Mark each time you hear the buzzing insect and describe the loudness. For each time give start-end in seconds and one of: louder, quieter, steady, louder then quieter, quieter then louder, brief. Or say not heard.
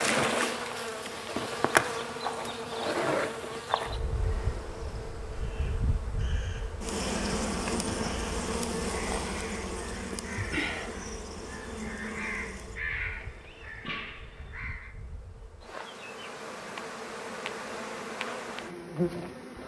0.0-19.6 quieter then louder.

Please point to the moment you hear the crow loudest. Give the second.
13 s.